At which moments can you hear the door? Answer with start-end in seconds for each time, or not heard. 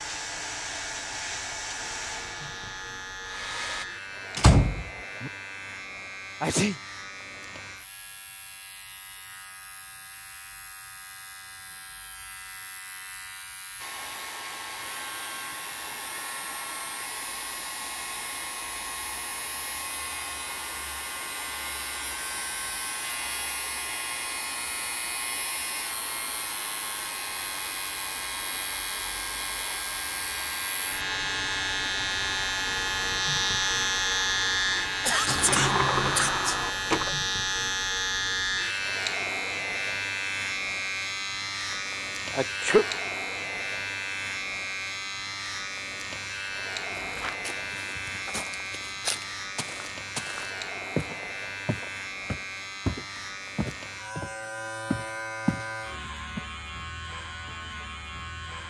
4.3-5.3, 35.2-37.1.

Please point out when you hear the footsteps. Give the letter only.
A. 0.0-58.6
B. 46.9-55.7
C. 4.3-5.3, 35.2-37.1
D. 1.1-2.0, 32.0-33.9
B.